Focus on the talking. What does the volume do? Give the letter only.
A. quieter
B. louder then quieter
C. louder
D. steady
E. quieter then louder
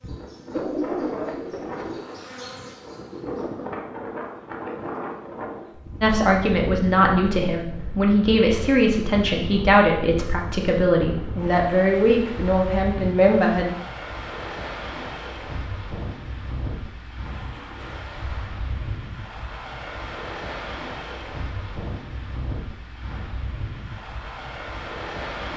D.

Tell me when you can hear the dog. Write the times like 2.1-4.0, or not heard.
not heard.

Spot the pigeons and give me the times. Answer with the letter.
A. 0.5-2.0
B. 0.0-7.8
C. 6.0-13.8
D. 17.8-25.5
A.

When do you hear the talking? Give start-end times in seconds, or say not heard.
6.0-13.8.